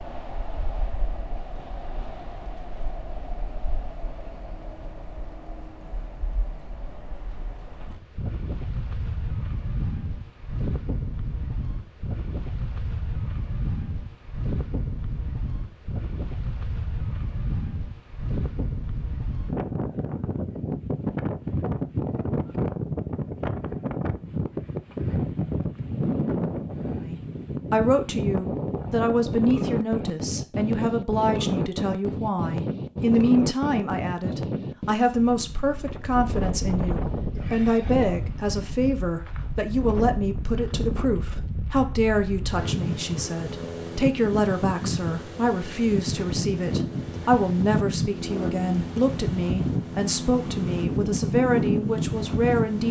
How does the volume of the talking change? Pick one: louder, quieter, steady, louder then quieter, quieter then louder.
steady.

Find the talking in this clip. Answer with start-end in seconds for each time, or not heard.
27.1-52.8.